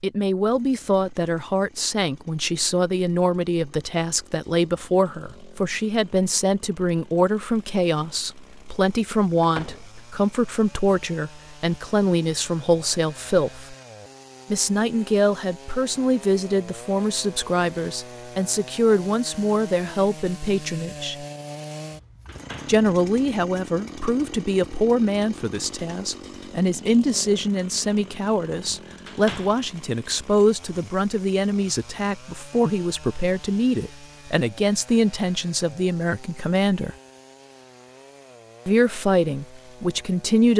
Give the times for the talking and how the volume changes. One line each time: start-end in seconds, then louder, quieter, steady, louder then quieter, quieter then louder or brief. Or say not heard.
0.0-13.8 steady
14.5-21.2 steady
22.6-36.9 steady
38.6-40.5 brief.